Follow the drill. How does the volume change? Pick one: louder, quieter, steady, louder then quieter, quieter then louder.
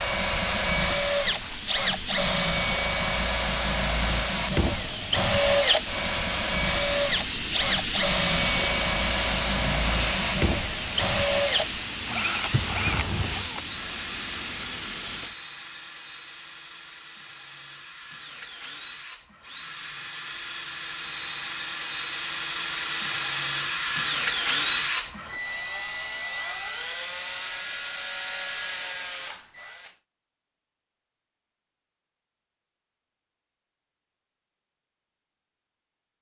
quieter then louder.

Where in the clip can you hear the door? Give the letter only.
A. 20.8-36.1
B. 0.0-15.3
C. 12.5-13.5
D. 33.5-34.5
C.